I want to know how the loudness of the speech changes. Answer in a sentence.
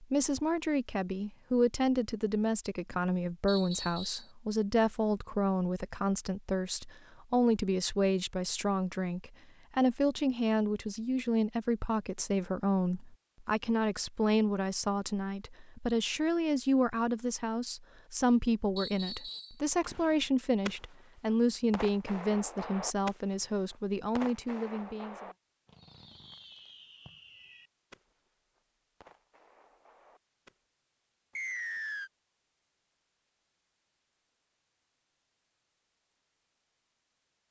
The loudness of the speech stays about the same.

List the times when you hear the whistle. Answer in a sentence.
The whistle can be heard from 3.5 to 4.3 s, from 18.8 to 19.6 s and from 31.4 to 32.1 s.